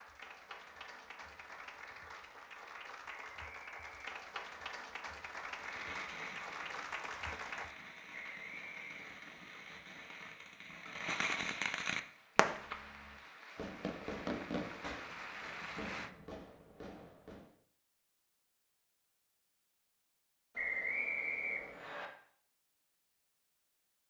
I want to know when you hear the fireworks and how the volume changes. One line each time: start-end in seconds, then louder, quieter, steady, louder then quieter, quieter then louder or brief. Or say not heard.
5.5-17.5 louder then quieter.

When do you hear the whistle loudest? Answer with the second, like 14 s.
21 s.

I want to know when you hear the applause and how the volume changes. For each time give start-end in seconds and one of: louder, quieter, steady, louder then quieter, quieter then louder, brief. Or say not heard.
0.0-7.8 louder
11.9-16.1 louder.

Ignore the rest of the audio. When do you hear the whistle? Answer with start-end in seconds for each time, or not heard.
3.1-4.0, 8.1-9.2, 20.6-22.1.